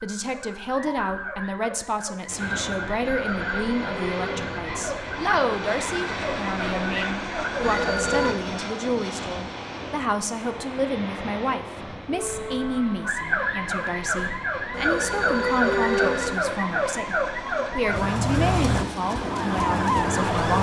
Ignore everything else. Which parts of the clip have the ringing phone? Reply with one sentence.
The ringing phone can be heard from 3.2 to 4.6 s, from 7.5 to 8.3 s and from 14.7 to 16.4 s.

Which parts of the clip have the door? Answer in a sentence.
You can't hear the door here.